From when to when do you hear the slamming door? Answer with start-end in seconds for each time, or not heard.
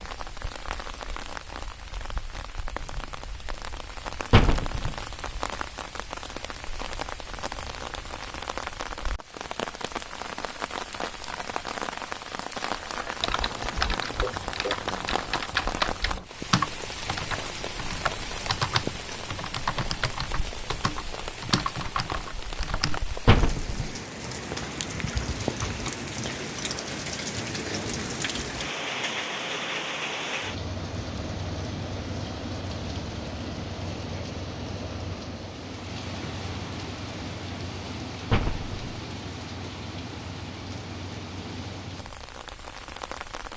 4.3-5.0, 23.2-23.9, 38.3-38.8.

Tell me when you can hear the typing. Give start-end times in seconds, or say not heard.
12.8-23.0.